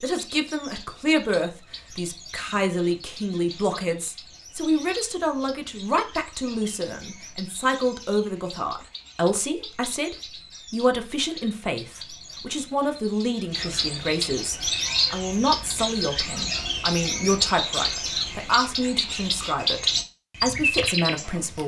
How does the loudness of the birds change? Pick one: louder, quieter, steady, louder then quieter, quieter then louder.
louder.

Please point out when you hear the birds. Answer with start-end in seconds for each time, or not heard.
0.0-21.6.